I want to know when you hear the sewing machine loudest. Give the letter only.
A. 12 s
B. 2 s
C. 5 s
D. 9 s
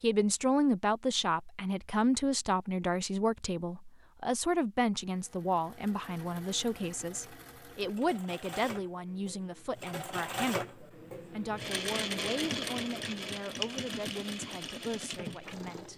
A.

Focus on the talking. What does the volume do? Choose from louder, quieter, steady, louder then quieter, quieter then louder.
quieter.